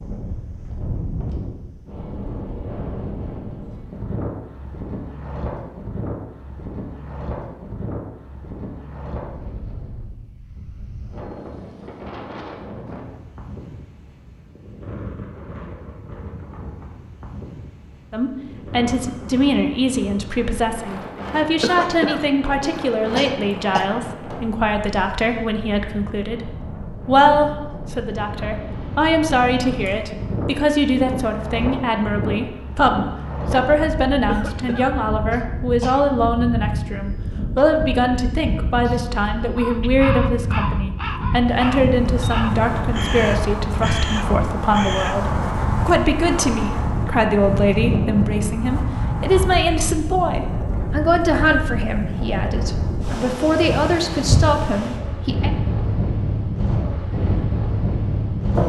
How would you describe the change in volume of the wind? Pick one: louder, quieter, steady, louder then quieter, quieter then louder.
louder.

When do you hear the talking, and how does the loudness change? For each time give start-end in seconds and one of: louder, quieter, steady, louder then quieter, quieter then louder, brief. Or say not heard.
18.1-55.5 steady.